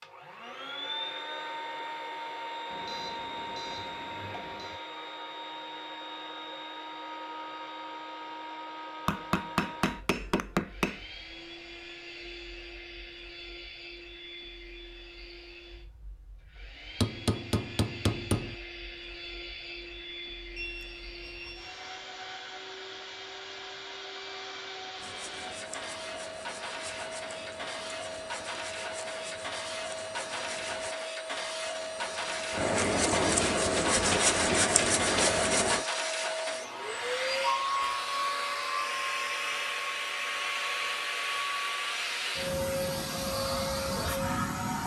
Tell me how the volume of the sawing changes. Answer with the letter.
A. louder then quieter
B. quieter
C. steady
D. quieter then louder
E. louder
E.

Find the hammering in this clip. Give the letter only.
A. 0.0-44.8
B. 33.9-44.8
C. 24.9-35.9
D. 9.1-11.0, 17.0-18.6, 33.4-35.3
D.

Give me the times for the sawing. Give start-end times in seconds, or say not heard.
24.9-35.9.